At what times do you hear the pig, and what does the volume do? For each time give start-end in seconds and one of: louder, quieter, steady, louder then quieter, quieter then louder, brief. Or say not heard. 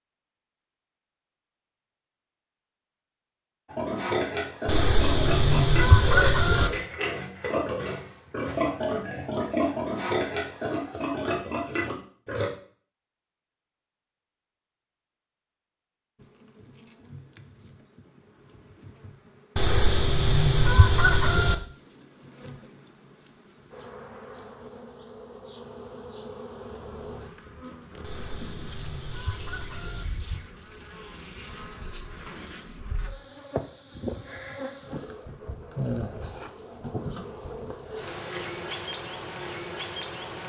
3.6-12.5 steady.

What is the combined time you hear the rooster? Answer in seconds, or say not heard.
6 s.